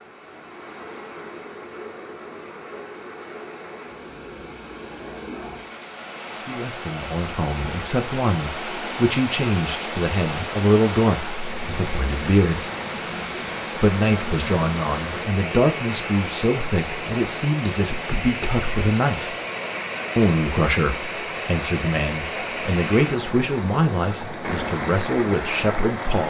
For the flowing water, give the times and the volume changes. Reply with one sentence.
The flowing water can be heard from 0.0 to 26.2 s, getting louder.